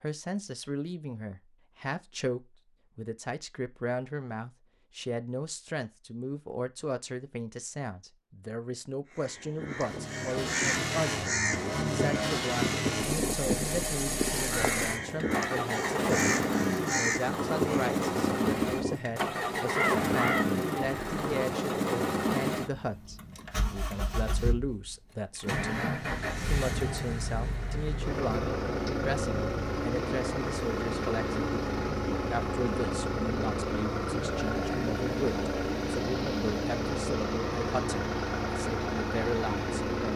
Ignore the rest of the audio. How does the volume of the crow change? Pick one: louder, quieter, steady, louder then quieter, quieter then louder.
steady.